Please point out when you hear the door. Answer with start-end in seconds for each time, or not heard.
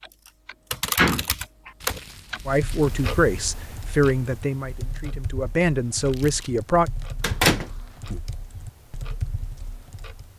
0.9-1.7, 7.2-8.2.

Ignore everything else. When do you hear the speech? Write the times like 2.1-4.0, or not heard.
2.5-6.9.